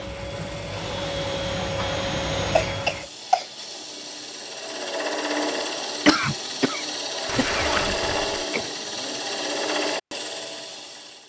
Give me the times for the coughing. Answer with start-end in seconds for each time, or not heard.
2.5-3.5, 6.0-8.7.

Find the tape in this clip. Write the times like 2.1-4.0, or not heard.
7.2-8.4.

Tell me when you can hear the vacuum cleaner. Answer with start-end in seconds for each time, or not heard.
0.0-3.1.